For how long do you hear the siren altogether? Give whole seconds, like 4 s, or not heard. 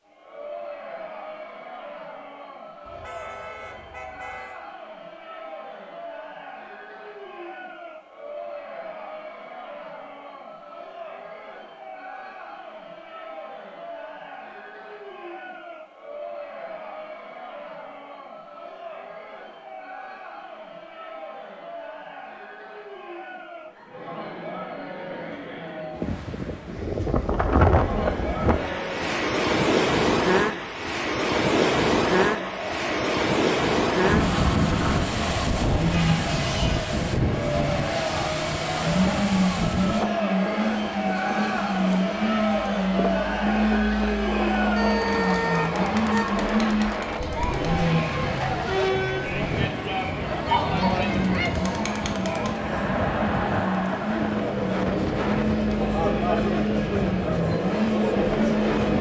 not heard.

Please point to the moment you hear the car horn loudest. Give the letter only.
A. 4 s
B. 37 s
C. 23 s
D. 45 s
D.